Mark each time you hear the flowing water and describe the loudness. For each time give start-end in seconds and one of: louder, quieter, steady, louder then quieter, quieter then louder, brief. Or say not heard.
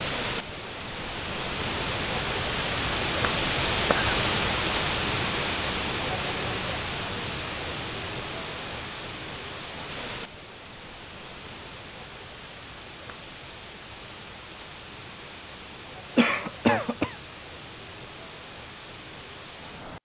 0.0-20.0 quieter.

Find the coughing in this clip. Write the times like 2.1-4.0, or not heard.
3.7-4.2, 16.1-17.1.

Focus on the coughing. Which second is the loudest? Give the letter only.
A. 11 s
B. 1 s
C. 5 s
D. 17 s
D.